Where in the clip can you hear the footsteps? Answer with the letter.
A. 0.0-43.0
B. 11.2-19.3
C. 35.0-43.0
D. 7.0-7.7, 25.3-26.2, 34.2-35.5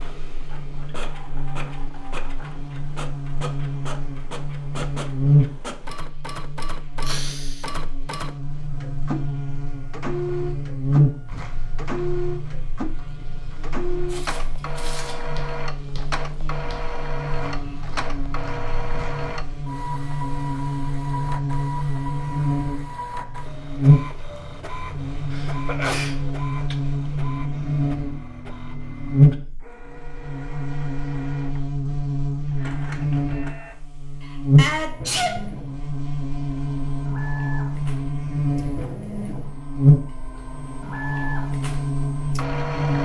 B.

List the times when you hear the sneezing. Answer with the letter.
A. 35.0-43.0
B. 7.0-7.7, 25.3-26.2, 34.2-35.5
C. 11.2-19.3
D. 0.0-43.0
B.